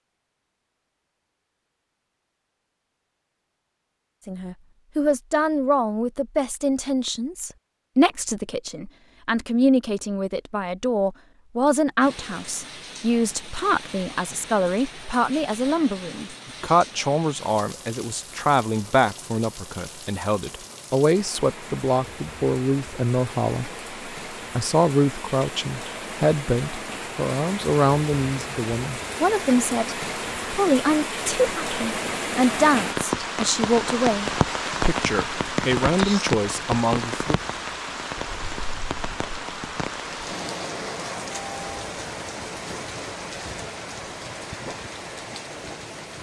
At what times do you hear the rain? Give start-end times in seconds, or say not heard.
12.0-46.1.